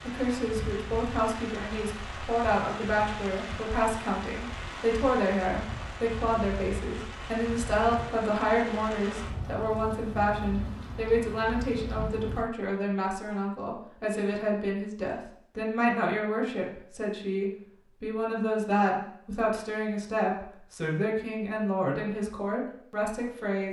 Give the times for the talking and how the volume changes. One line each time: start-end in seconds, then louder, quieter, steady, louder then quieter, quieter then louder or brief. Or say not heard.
0.0-23.6 steady.